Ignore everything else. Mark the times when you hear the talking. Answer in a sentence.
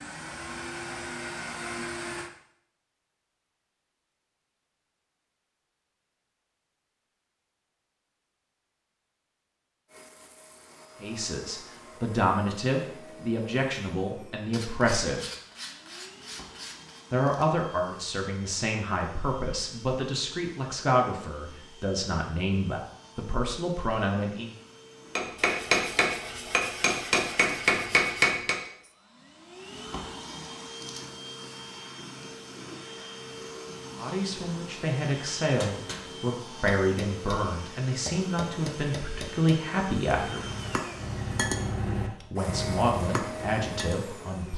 The talking can be heard from 11.0 to 15.2 s, from 17.1 to 24.5 s, from 34.0 to 40.5 s and from 42.3 to 44.5 s.